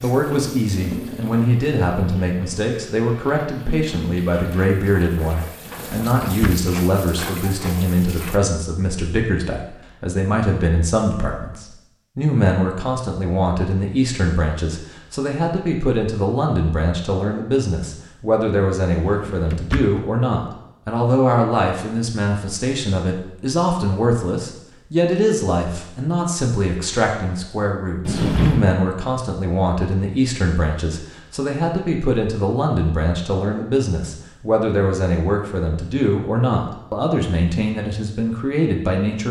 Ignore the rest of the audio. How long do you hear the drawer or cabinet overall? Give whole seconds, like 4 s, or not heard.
3 s.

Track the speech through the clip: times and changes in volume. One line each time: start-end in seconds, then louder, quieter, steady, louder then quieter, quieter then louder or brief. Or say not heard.
0.0-39.2 steady.